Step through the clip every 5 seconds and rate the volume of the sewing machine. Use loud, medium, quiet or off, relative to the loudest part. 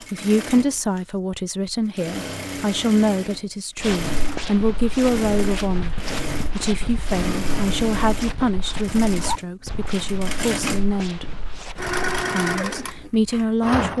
medium, loud, loud.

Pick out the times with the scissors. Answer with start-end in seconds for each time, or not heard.
not heard.